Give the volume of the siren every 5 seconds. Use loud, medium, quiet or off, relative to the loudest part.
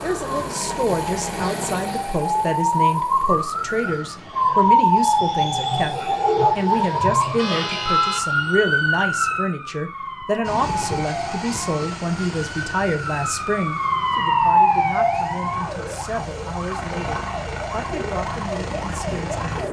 loud, loud, loud, medium.